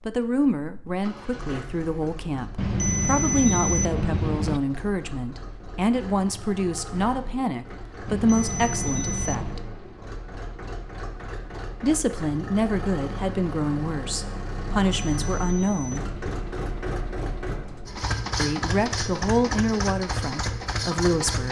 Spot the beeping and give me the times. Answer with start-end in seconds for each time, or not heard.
2.5-4.6, 8.1-9.6, 14.9-16.4.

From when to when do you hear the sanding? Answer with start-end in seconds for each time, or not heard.
not heard.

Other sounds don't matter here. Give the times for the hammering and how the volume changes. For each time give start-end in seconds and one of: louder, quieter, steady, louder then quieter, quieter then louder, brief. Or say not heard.
not heard.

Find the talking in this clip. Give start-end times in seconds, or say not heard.
0.1-9.6, 11.8-16.1, 18.4-21.4.